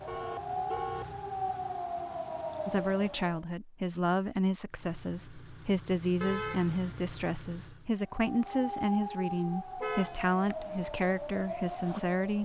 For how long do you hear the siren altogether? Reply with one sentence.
The siren can be heard for 8 seconds in total.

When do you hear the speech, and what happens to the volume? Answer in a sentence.
The speech can be heard from 2.6 to 12.4 s, at a steady volume.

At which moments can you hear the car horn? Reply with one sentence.
The car horn can be heard from 0.1 to 1.1 s, from 6.2 to 6.8 s and from 9.8 to 10.8 s.